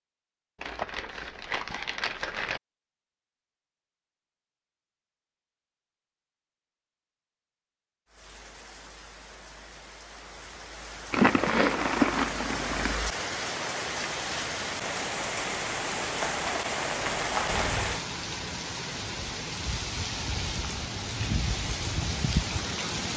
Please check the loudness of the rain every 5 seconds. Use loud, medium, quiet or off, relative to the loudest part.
off, quiet, loud, loud, loud.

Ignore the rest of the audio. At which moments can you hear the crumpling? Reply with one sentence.
The crumpling can be heard from 0.6 to 2.6 s, from 11.1 to 13.0 s and from 16.2 to 17.7 s.